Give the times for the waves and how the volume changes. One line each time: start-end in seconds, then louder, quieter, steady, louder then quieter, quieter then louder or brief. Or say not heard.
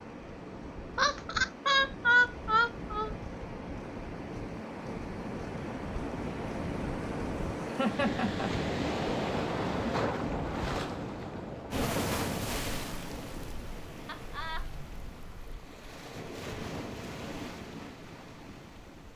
0.0-19.1 louder then quieter.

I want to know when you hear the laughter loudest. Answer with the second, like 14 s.
2 s.